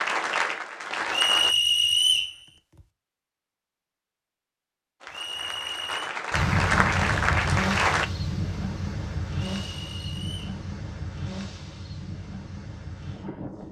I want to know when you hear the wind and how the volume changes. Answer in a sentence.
You can hear the wind from 6.3 to 13.6 s, getting quieter.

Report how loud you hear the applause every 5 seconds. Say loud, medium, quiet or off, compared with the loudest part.
loud, loud, off.